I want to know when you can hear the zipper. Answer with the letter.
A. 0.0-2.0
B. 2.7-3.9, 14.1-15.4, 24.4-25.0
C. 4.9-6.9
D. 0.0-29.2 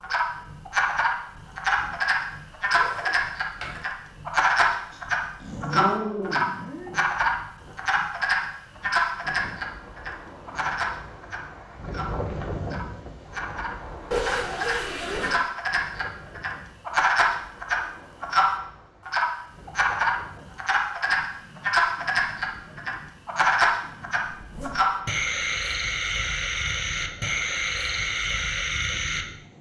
B.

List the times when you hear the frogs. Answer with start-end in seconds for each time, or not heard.
0.0-29.2.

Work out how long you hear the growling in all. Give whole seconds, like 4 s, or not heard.
2 s.